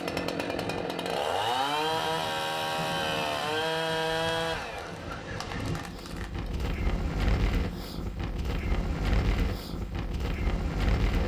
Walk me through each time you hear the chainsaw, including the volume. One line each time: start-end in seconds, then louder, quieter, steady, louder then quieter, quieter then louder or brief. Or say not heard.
0.0-6.5 quieter.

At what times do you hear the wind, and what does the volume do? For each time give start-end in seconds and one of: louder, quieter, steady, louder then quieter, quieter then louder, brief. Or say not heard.
0.0-11.2 louder.